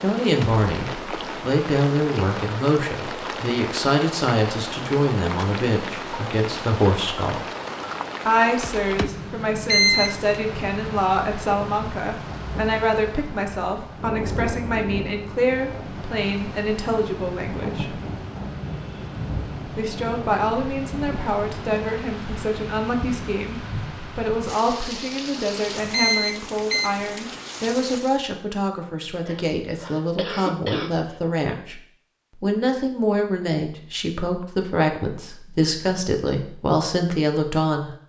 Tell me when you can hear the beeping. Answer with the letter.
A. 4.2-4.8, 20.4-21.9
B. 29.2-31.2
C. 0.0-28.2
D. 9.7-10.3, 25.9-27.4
D.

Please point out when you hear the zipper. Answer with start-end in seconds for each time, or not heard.
not heard.